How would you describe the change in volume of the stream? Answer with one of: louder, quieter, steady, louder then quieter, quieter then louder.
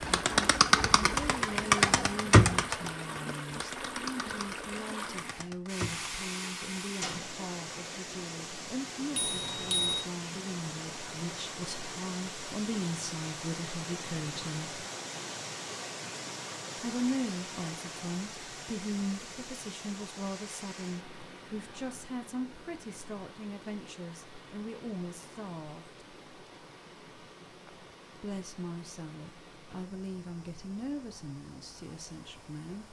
quieter.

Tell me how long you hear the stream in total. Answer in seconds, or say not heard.
33 s.